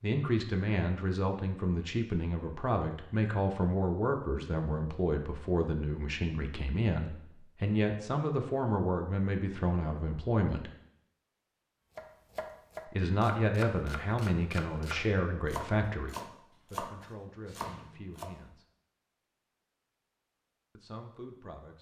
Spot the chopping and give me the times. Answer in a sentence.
The chopping can be heard from 11.9 to 18.4 s.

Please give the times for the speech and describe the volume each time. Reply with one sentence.
You can hear the speech from 0.0 to 10.7 s, at a steady volume; from 12.9 to 18.6 s, getting quieter; and briefly from 20.8 to 21.7 s.